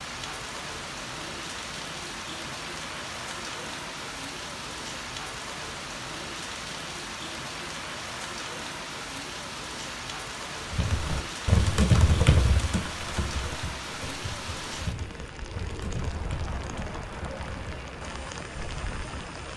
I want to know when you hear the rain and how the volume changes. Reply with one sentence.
You can hear the rain from 0.0 to 19.5 s, at a steady volume.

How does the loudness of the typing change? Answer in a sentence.
The loudness of the typing goes down.